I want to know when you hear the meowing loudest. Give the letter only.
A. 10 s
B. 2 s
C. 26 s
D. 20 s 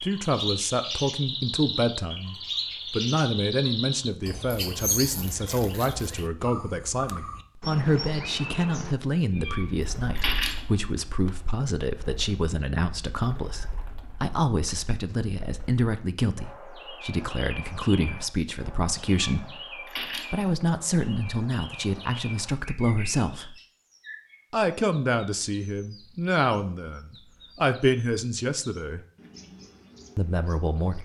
A.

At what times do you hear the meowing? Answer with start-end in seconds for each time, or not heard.
9.3-10.7, 19.1-20.4.